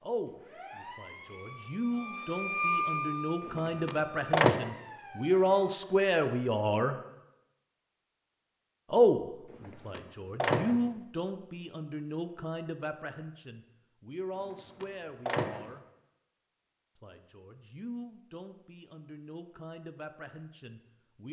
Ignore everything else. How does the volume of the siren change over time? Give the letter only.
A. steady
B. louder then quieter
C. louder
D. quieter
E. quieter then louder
B.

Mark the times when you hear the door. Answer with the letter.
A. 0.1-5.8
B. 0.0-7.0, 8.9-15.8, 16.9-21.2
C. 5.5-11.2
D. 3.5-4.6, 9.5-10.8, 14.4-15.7
D.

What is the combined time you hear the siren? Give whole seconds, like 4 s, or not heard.
6 s.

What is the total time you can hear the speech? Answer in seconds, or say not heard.
18 s.